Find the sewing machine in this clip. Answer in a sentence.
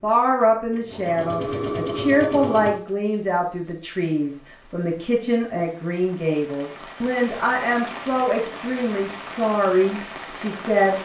You can hear the sewing machine from 0.0 to 2.8 s.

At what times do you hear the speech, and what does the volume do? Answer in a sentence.
You can hear the speech from 0.0 to 11.0 s, at a steady volume.